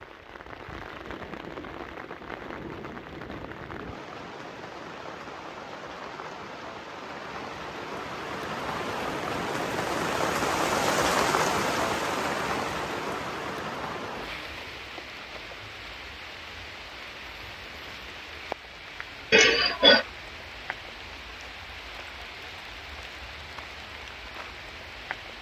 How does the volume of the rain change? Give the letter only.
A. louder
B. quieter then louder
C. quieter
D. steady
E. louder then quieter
E.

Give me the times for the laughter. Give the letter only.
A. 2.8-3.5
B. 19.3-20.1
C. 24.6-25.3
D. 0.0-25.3
B.